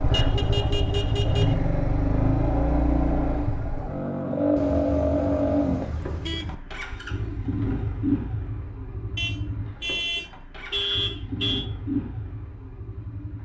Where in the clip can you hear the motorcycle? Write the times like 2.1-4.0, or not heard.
0.0-13.4.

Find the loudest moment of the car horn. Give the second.
11 s.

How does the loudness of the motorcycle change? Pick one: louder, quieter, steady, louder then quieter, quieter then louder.
quieter.